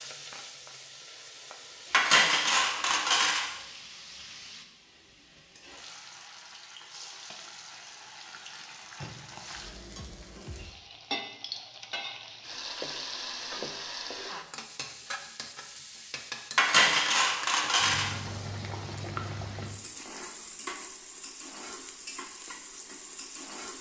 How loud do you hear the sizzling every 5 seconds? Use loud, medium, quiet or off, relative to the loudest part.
medium, medium, loud, loud, loud.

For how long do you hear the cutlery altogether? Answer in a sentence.
You can hear the cutlery for 3 seconds altogether.